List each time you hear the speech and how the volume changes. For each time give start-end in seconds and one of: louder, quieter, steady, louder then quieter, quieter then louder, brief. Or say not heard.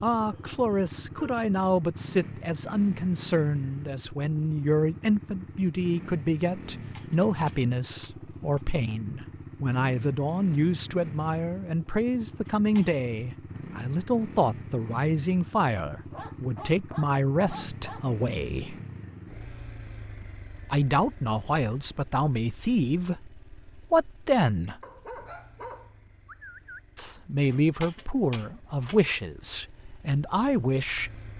0.0-18.8 steady
20.7-24.8 quieter then louder
26.9-31.1 quieter then louder.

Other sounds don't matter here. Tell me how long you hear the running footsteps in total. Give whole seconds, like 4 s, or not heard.
not heard.